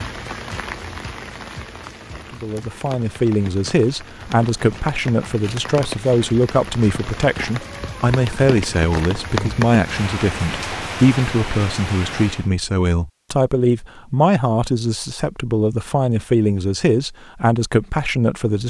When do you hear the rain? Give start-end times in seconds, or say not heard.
0.0-12.5.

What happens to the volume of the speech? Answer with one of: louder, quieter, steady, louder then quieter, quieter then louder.
steady.